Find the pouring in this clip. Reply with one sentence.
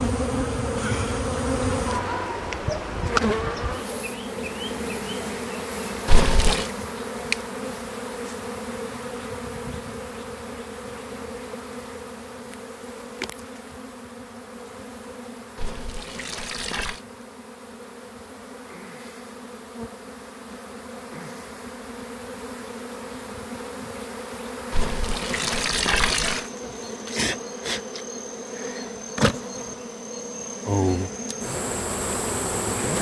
You can hear the pouring from 6.0 to 6.7 s, from 15.6 to 17.0 s and from 24.7 to 26.4 s.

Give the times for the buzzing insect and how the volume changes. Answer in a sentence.
You can hear the buzzing insect from 0.0 to 32.9 s, getting quieter then louder.